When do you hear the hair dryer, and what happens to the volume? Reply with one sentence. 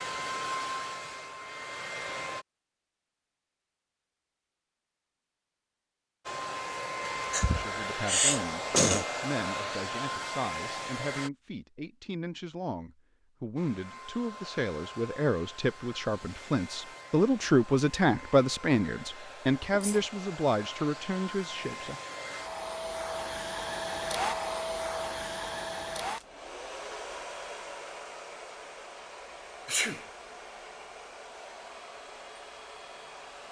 You can hear the hair dryer briefly from 0.0 to 2.5 s; from 6.2 to 11.3 s, at a steady volume; and from 13.6 to 33.4 s, getting louder then quieter.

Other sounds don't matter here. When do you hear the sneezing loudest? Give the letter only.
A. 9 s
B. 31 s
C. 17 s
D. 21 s
A.